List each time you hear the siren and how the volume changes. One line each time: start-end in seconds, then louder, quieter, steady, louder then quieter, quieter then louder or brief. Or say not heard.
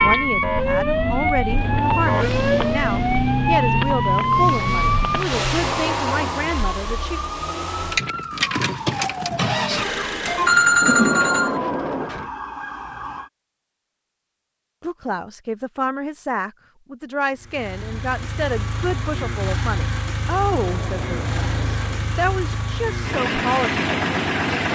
0.0-13.3 quieter.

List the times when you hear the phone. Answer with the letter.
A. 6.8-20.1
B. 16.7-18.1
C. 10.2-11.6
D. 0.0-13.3
C.